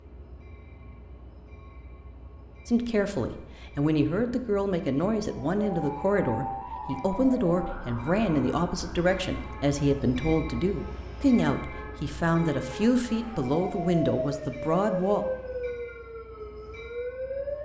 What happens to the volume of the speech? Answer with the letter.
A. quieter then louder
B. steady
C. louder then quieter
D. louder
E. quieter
B.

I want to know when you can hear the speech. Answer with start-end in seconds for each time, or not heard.
2.6-15.2.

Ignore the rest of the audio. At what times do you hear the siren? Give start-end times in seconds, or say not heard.
5.2-17.5.